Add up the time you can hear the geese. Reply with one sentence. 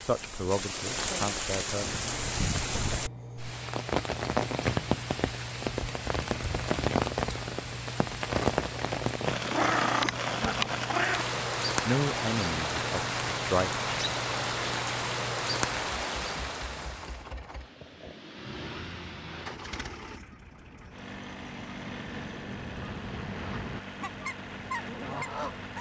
You can hear the geese for 7 seconds altogether.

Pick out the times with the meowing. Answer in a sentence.
The meowing can be heard from 9.4 to 11.4 s.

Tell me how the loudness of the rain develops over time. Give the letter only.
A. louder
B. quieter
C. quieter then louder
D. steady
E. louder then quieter
D.